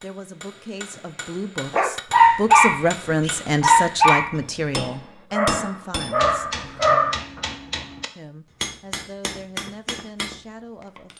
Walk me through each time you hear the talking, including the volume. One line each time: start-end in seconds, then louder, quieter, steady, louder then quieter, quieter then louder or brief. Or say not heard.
0.0-6.6 louder then quieter
8.2-11.1 brief.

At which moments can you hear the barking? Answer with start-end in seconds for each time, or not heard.
1.7-7.4.